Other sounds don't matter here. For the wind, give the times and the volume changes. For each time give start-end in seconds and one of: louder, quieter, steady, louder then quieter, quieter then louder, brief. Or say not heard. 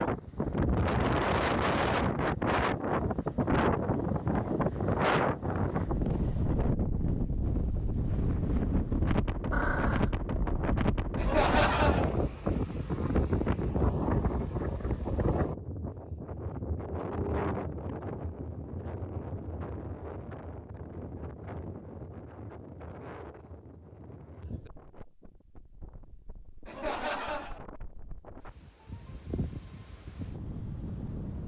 0.0-31.4 quieter.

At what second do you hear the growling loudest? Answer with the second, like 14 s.
10 s.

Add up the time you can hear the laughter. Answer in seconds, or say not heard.
2 s.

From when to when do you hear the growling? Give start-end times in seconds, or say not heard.
9.5-10.1, 16.9-17.7.